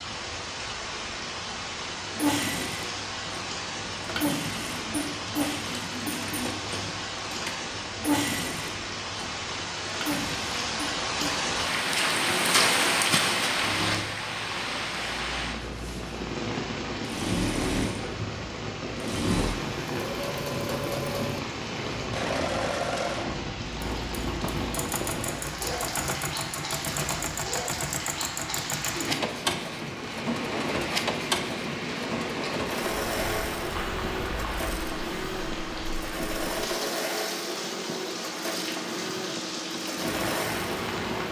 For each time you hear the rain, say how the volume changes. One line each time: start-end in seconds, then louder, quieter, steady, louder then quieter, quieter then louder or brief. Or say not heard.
0.0-41.2 louder then quieter.